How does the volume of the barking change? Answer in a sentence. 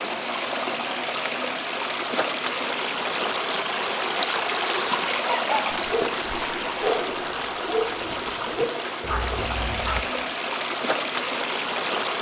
The loudness of the barking goes up, then down.